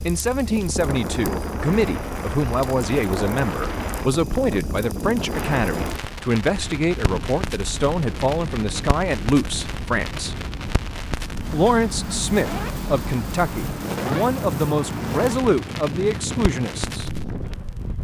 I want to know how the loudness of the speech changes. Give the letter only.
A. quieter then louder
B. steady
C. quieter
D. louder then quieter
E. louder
B.